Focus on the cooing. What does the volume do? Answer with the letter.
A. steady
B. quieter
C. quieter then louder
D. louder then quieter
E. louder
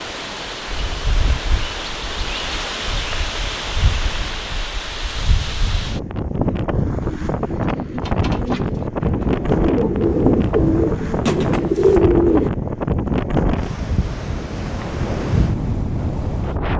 E.